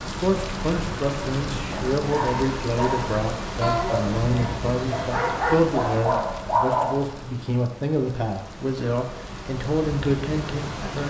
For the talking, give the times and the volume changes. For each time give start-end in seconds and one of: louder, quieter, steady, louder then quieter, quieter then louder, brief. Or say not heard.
0.0-11.0 steady.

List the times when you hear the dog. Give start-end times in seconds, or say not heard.
1.9-7.0.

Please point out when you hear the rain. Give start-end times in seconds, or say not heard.
0.0-11.0.